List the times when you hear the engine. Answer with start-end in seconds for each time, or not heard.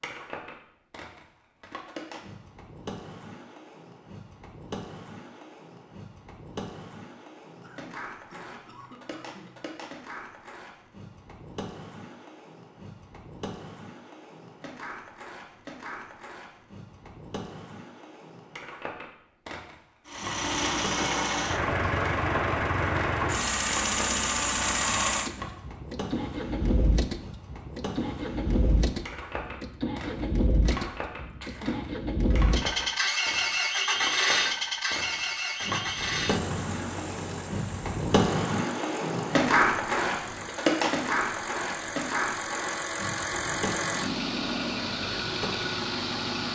20.1-46.5.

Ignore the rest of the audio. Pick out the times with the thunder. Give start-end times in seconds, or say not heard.
not heard.